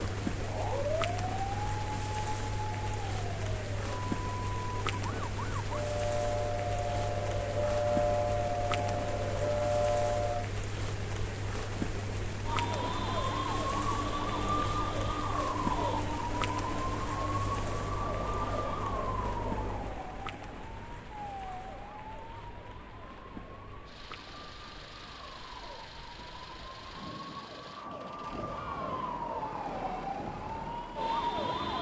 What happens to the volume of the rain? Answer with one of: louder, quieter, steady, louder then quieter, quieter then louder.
quieter.